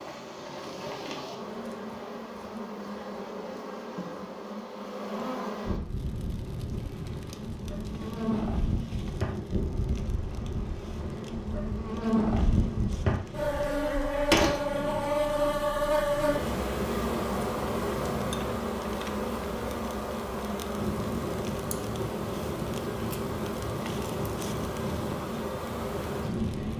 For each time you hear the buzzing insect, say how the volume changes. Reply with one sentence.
The buzzing insect can be heard from 0.0 to 26.7 s, getting louder then quieter.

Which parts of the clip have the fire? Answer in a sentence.
The fire can be heard from 5.8 to 26.7 s.